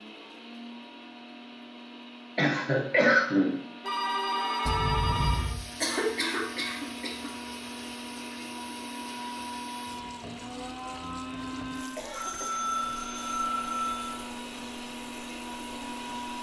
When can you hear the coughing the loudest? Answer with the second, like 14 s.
3 s.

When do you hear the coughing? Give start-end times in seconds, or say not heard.
2.4-3.5, 5.8-7.3, 11.9-12.7.